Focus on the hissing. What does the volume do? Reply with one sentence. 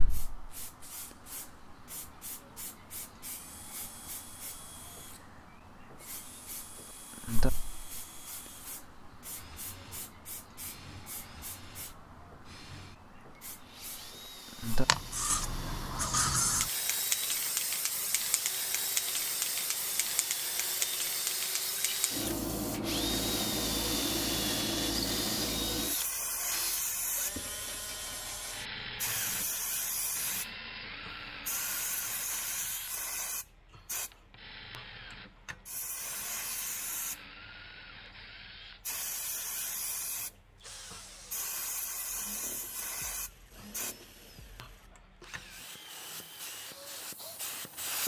The volume of the hissing goes up, then down.